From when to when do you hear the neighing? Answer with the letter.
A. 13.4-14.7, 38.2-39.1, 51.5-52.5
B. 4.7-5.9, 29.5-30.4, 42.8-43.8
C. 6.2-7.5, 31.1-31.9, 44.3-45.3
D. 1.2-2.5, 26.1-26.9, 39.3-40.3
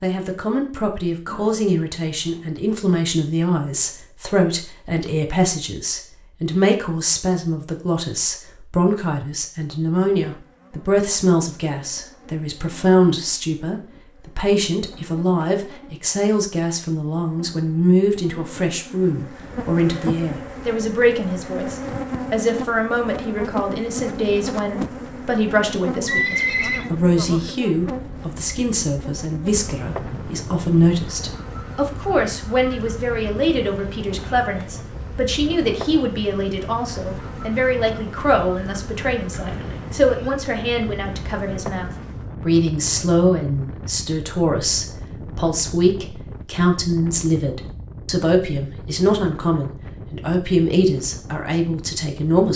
D.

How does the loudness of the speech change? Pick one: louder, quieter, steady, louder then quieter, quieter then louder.
steady.